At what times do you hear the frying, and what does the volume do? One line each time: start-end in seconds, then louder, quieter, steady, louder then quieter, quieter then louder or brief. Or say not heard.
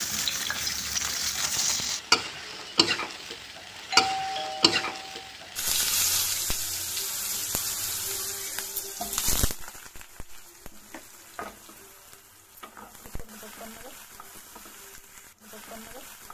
0.0-16.2 quieter.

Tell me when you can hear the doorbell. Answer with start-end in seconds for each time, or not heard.
3.9-5.2.